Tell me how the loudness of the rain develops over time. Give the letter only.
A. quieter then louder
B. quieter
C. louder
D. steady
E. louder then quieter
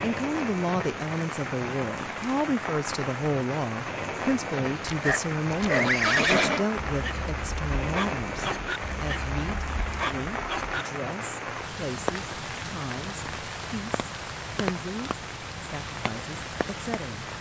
D.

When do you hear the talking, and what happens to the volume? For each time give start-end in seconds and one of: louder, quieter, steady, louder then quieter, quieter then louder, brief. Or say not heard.
0.0-17.3 quieter.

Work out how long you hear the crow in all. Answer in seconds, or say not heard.
not heard.